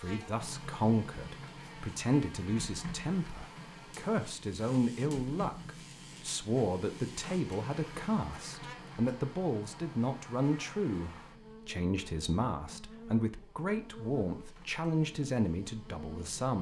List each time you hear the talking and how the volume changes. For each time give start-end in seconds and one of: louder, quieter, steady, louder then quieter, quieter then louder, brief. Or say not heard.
0.0-16.5 steady.